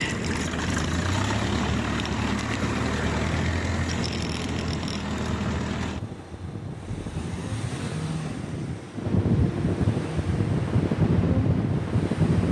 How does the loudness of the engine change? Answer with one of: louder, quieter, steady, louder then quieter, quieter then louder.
quieter.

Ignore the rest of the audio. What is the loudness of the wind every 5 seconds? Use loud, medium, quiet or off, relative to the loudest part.
medium, medium, loud.